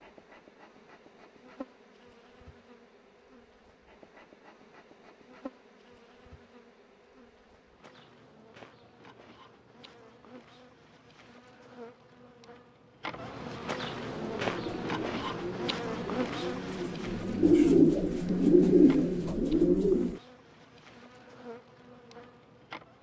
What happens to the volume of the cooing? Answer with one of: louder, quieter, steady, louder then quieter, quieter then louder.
louder.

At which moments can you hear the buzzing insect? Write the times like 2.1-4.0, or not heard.
0.0-22.9.